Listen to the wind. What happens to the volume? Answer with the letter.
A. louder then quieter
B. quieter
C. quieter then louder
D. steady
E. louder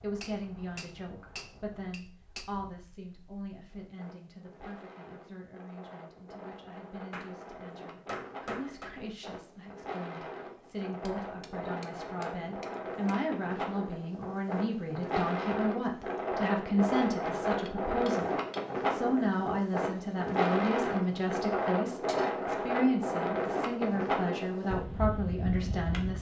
E.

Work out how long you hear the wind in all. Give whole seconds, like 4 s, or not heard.
26 s.